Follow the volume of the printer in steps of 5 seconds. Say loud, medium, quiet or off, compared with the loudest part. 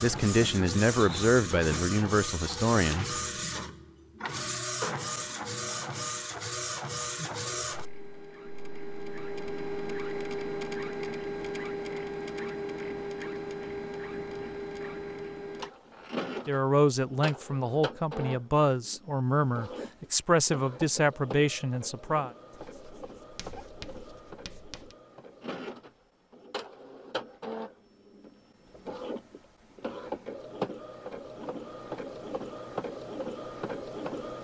loud, loud, loud, medium, medium, medium, loud.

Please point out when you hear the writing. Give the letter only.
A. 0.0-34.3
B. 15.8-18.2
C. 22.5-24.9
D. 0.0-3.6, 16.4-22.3
C.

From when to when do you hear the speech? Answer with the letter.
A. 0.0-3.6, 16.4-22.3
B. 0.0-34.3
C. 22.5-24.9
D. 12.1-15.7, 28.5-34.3
A.